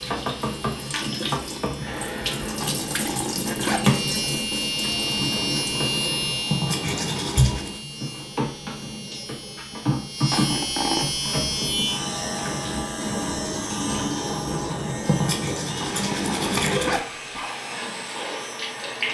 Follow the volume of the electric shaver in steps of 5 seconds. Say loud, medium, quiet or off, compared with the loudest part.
loud, loud, loud, medium.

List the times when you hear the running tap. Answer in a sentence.
The running tap can be heard from 0.0 to 19.1 s.